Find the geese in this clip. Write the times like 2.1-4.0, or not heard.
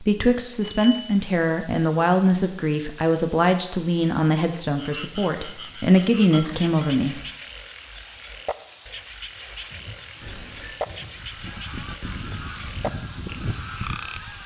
11.2-14.4.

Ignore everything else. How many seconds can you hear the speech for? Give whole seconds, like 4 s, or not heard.
7 s.